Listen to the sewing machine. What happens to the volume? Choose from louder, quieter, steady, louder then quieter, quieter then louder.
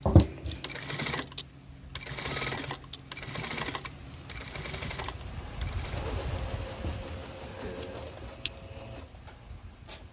quieter.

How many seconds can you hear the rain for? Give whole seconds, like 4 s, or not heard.
10 s.